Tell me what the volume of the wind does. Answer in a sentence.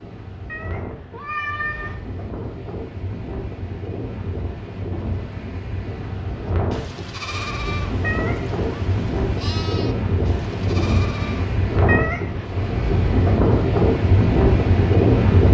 The loudness of the wind goes up.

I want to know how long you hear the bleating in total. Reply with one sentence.
You can hear the bleating for 5 seconds altogether.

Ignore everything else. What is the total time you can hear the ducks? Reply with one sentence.
You can't hear the ducks here.